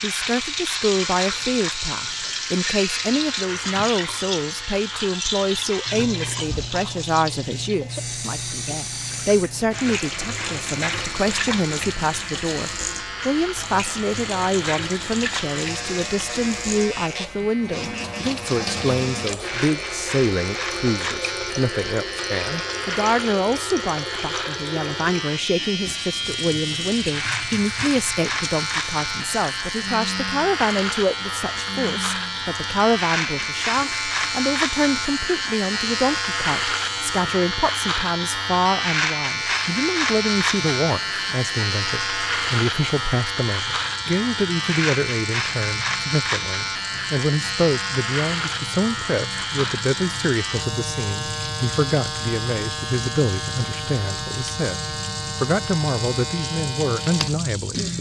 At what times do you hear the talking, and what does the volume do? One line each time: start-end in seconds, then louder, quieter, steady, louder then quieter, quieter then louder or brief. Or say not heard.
0.0-57.9 steady.